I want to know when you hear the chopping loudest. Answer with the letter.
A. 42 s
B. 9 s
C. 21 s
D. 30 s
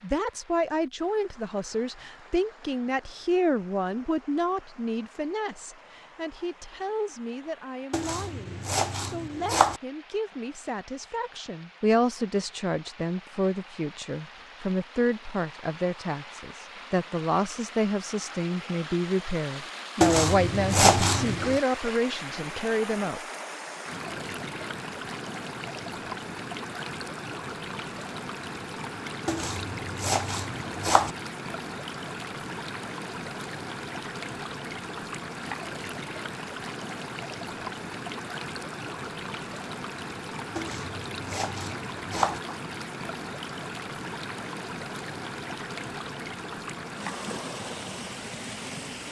C.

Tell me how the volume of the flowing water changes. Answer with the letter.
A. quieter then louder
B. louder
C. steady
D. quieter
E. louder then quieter
B.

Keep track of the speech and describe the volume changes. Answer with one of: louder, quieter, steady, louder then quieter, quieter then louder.
quieter then louder.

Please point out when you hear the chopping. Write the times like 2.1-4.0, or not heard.
7.9-9.8, 20.0-21.6, 29.2-31.1, 40.5-42.4.